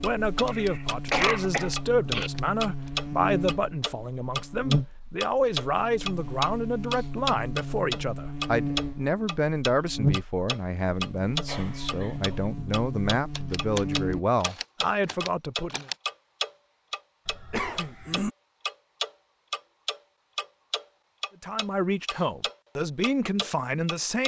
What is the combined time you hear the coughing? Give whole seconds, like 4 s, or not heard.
4 s.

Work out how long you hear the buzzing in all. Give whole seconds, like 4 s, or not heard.
14 s.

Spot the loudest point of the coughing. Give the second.
1 s.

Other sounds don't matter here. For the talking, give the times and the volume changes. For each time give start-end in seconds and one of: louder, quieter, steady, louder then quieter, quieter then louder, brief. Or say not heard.
0.0-15.8 steady
21.4-24.2 brief.